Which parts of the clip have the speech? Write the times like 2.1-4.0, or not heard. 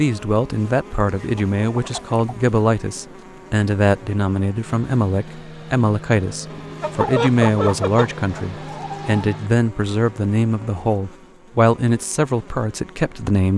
0.0-13.5.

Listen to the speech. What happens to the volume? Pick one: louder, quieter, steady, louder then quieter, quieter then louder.
steady.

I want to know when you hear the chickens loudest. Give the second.
7 s.